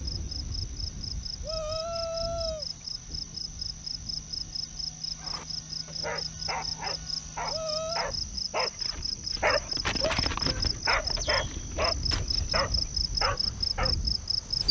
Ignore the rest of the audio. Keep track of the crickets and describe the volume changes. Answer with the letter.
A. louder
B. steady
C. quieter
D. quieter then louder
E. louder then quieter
A.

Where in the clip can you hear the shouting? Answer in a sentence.
The shouting can be heard from 1.4 to 2.6 s, from 7.5 to 8.1 s and from 10.0 to 11.2 s.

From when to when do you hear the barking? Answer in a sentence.
The barking can be heard from 5.2 to 13.9 s.